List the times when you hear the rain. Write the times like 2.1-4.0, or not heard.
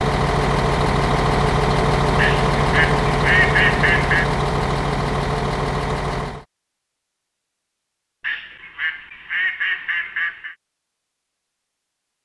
not heard.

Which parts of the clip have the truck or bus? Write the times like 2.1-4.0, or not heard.
0.0-6.5.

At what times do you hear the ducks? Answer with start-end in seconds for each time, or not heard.
2.1-4.3, 8.2-10.6.